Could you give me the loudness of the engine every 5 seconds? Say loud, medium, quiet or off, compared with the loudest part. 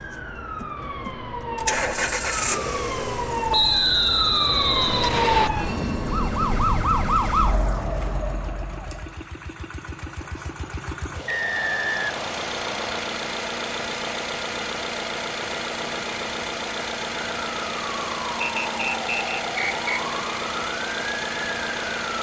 loud, quiet, loud, loud, loud.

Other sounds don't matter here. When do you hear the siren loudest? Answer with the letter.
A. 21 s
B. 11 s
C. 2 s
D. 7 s
D.